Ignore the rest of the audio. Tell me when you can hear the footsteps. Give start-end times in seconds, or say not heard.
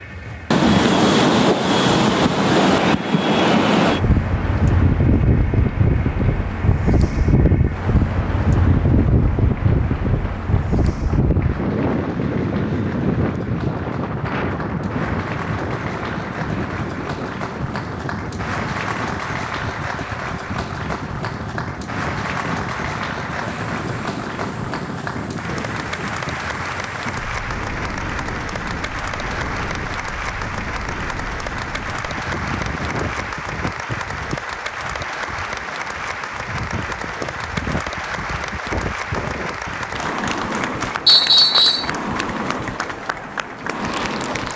not heard.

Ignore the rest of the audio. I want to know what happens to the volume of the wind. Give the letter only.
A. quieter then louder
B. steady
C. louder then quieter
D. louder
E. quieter
E.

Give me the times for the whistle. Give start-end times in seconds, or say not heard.
41.0-41.9.